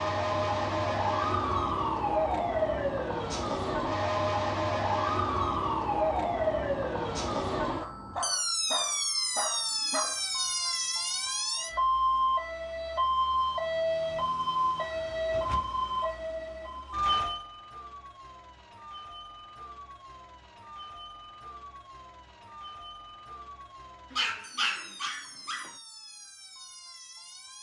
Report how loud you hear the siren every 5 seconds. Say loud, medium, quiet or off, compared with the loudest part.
loud, loud, loud, medium, quiet, quiet.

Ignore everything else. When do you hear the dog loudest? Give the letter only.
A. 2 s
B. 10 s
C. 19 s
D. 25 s
D.